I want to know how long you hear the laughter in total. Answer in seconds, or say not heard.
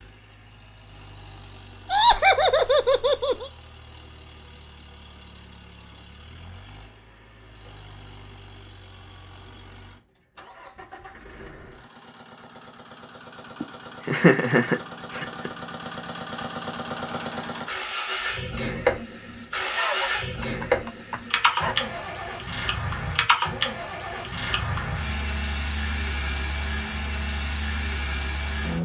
6 s.